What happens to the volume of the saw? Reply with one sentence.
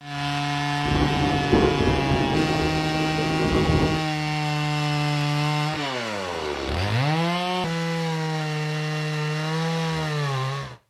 The volume of the saw stays about the same.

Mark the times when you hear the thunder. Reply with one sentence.
The thunder can be heard from 0.8 to 4.0 s.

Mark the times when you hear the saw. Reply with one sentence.
The saw can be heard from 0.0 to 10.8 s.